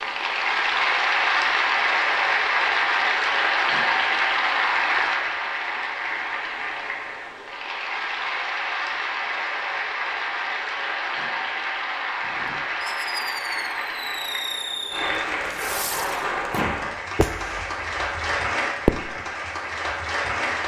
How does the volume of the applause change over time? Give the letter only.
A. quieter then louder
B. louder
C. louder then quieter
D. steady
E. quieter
E.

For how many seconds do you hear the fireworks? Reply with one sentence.
You can hear the fireworks for 7 seconds altogether.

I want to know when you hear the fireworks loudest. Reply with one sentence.
The loudest moment of the fireworks is at 19 seconds.